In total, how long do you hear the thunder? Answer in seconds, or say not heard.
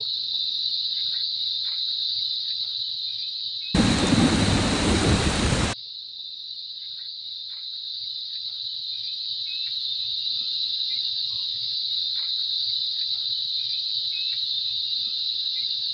2 s.